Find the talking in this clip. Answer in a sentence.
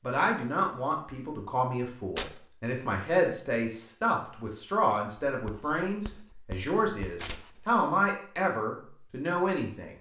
You can hear the talking from 0.0 to 9.9 s.